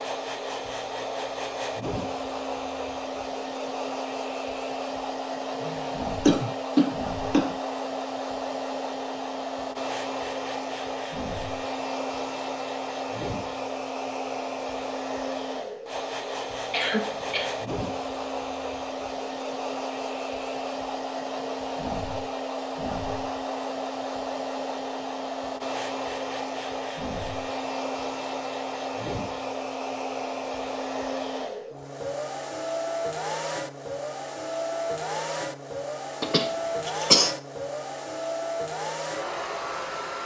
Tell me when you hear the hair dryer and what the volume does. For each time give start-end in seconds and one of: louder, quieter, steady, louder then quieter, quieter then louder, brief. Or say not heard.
0.0-40.2 steady.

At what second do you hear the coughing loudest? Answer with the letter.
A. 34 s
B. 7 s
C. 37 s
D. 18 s
C.